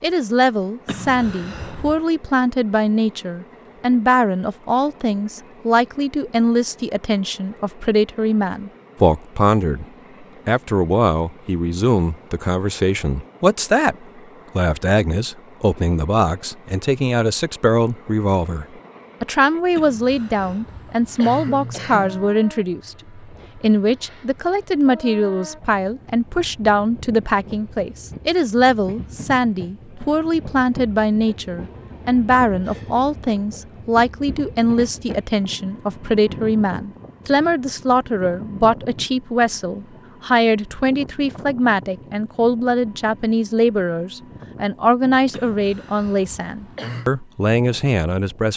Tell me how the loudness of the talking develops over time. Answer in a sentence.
The loudness of the talking stays about the same.